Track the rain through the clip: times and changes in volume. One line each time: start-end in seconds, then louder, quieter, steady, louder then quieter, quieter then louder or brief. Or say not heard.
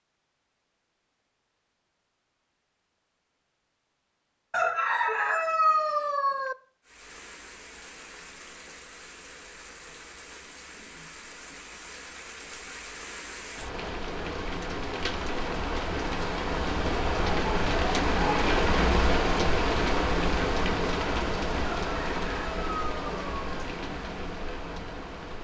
6.8-25.3 louder then quieter.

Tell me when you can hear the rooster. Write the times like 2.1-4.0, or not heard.
4.5-6.5, 21.8-23.6.